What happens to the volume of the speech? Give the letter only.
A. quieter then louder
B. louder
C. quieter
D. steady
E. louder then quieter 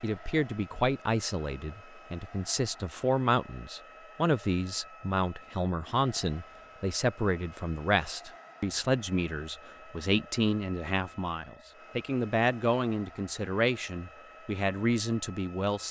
D.